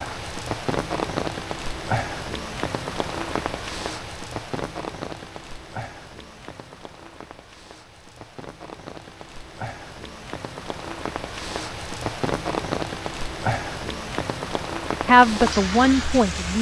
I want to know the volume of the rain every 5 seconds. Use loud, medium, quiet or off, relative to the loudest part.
loud, medium, loud, loud.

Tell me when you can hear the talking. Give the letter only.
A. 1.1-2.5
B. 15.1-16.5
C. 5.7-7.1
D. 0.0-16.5
B.